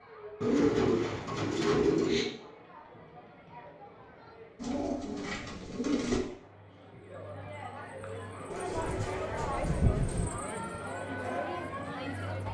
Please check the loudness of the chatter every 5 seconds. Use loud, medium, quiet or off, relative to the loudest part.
quiet, loud, loud.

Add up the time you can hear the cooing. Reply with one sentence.
You can hear the cooing for 5 seconds altogether.